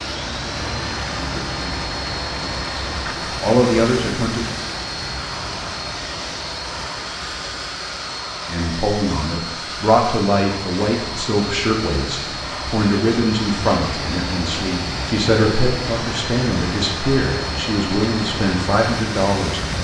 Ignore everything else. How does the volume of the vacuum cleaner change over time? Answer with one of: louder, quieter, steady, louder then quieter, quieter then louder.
steady.